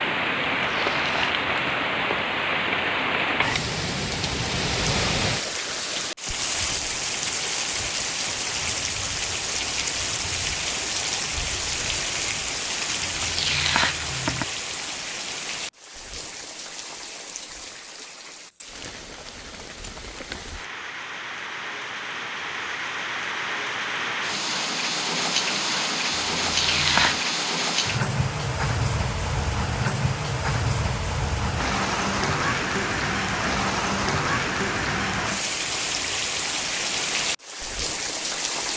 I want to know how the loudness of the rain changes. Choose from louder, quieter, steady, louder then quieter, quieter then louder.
quieter then louder.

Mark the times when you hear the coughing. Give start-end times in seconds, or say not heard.
not heard.